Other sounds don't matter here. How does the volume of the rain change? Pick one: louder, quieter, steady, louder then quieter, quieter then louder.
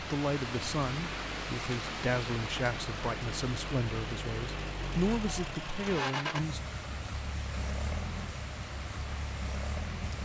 quieter.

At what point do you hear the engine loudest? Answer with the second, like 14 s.
6 s.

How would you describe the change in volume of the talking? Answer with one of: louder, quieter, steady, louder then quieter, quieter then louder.
steady.